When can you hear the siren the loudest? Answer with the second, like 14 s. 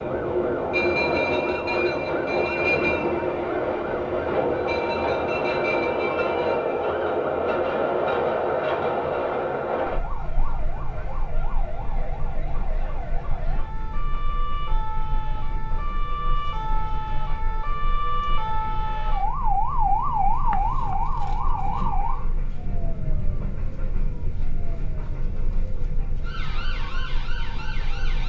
20 s.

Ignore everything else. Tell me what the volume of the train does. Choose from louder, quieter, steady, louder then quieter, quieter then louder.
quieter.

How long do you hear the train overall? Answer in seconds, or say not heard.
28 s.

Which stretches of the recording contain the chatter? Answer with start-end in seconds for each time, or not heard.
not heard.